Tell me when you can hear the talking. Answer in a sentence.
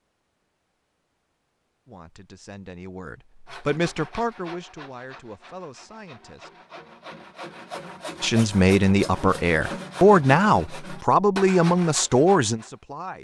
You can hear the talking from 1.9 to 6.5 s and from 8.2 to 13.2 s.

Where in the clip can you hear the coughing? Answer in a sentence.
The coughing can't be heard in this clip.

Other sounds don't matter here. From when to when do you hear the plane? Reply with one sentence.
The plane can't be heard in this clip.